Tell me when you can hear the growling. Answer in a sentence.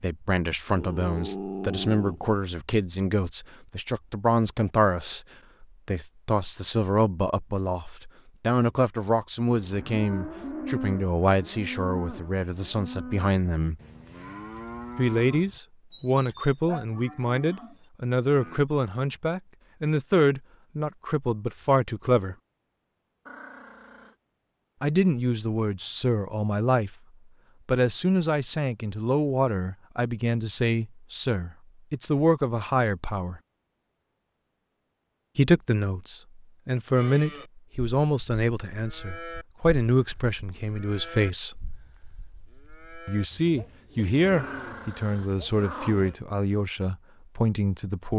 You can hear the growling from 0.7 to 2.4 s, from 23.2 to 24.1 s and from 44.4 to 46.1 s.